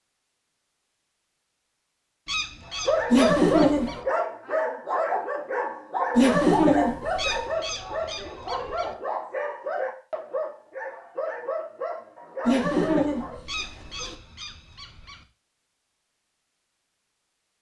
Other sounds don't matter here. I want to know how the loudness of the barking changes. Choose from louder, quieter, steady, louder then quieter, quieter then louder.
quieter.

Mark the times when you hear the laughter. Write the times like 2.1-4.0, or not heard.
3.1-4.0, 6.2-7.4, 12.4-14.2.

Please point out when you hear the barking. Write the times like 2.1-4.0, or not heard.
2.7-13.3.